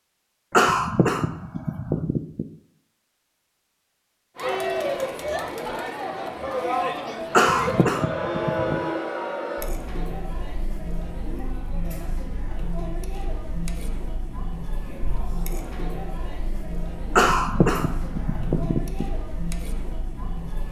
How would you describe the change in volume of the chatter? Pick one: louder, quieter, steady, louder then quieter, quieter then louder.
quieter.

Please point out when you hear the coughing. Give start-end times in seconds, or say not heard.
0.5-2.5, 7.3-8.8, 17.1-19.1.